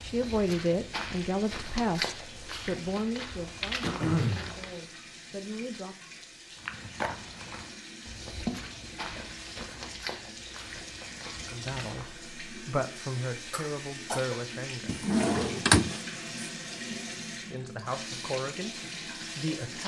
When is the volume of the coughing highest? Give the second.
4 s.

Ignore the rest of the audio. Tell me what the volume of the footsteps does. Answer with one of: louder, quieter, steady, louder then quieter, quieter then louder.
quieter.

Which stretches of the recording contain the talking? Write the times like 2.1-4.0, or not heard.
0.0-6.0, 11.5-15.1, 17.4-19.8.